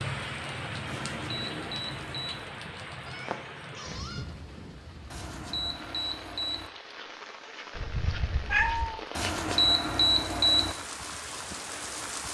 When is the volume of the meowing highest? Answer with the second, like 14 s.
9 s.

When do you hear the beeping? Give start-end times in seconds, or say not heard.
0.8-2.5, 5.1-6.7, 9.2-10.8.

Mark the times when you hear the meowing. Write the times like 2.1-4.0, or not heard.
3.0-4.2, 7.8-9.0.